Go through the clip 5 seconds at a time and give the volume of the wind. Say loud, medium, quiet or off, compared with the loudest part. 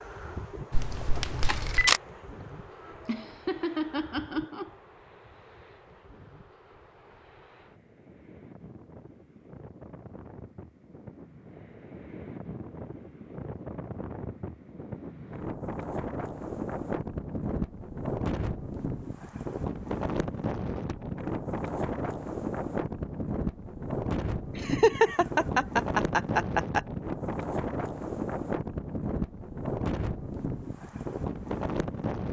quiet, quiet, medium, loud, loud, loud, loud.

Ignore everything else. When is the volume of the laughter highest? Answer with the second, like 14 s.
25 s.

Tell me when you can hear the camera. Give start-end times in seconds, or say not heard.
0.7-2.0.